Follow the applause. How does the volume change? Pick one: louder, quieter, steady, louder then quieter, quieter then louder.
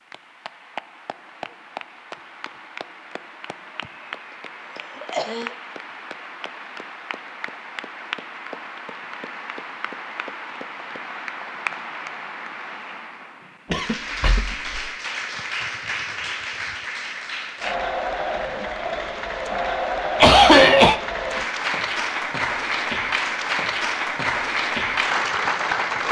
louder.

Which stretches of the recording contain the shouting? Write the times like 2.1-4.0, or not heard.
not heard.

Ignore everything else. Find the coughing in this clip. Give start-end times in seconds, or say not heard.
4.8-5.5, 13.7-14.8, 20.2-21.0.